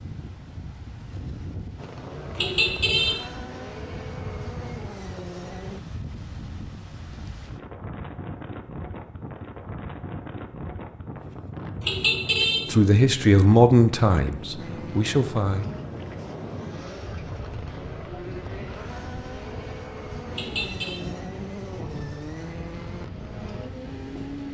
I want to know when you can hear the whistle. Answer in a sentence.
The whistle can't be heard in this clip.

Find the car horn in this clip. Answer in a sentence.
You can hear the car horn from 2.4 to 3.2 s, from 11.8 to 12.7 s and from 20.3 to 21.0 s.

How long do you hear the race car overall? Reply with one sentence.
The race car can be heard for 14 seconds in total.